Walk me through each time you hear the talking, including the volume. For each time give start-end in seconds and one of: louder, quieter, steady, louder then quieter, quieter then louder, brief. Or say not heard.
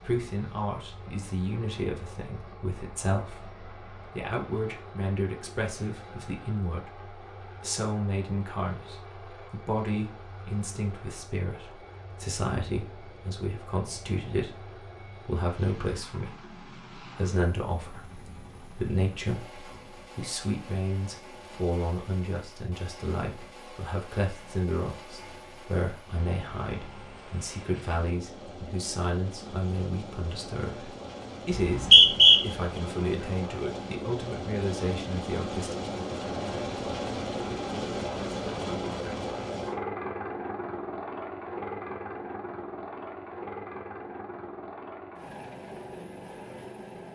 0.0-35.8 steady.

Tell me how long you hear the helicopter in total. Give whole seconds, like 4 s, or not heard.
47 s.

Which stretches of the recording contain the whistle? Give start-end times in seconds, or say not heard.
31.5-32.4.